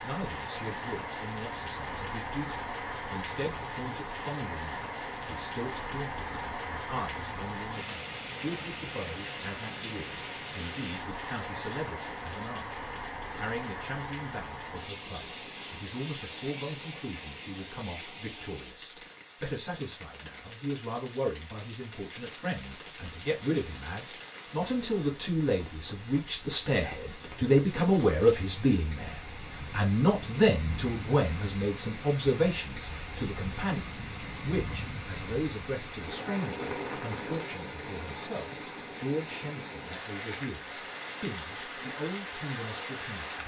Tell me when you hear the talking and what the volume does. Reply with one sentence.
You can hear the talking from 0.0 to 43.4 s, getting louder then quieter.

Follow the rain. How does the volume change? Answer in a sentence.
The loudness of the rain goes down, then up.